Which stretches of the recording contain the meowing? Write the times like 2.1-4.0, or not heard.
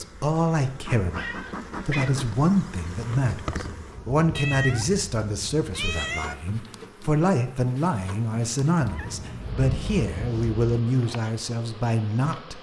1.1-2.3, 4.3-6.3, 8.8-10.8.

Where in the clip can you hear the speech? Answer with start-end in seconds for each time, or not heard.
0.0-12.5.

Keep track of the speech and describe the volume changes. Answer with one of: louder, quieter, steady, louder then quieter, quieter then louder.
steady.